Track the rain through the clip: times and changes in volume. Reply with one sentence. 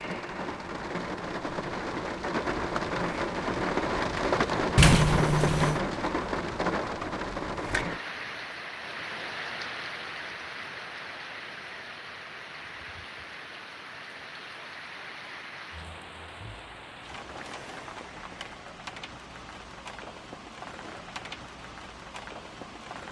The rain can be heard from 0.0 to 23.0 s, getting quieter.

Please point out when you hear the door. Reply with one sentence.
The door can be heard from 4.8 to 5.8 s.